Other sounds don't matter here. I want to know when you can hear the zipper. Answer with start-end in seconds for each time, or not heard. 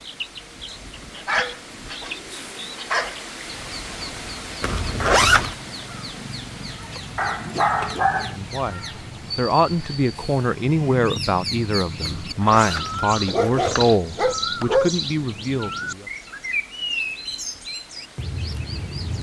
4.6-5.5, 12.1-13.9.